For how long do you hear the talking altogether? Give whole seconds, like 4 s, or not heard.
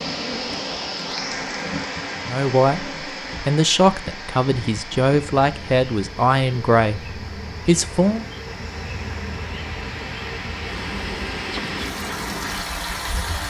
6 s.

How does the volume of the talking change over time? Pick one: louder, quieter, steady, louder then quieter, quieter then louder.
steady.